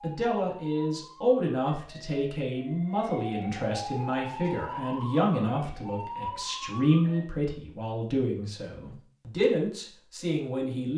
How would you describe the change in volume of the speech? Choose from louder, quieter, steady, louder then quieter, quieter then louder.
steady.